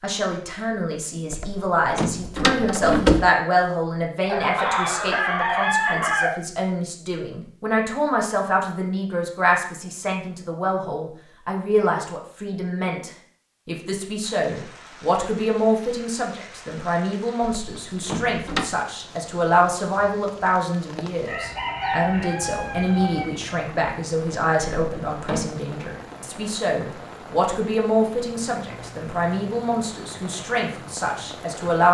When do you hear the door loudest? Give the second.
3 s.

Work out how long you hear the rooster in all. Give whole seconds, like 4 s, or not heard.
4 s.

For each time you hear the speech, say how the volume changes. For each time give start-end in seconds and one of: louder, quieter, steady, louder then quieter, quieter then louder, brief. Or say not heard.
0.0-31.8 steady.